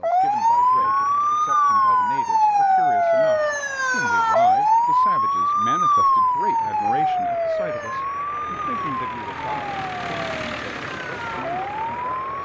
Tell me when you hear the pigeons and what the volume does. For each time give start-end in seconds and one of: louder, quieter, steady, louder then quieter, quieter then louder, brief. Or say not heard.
not heard.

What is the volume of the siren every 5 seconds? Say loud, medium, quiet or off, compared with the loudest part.
loud, loud, medium.